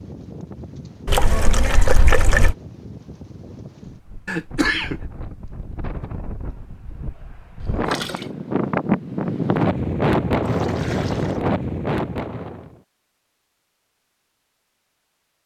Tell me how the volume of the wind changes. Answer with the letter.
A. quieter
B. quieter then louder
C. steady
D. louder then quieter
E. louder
E.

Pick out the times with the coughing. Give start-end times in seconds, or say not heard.
4.2-5.0.